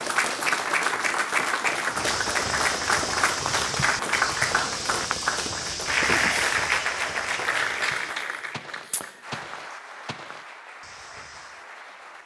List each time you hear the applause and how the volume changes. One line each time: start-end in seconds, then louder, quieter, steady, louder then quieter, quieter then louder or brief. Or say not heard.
0.0-12.2 quieter.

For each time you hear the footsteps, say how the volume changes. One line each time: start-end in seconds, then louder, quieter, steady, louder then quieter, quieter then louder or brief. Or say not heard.
1.9-11.7 quieter.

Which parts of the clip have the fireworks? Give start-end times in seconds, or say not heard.
not heard.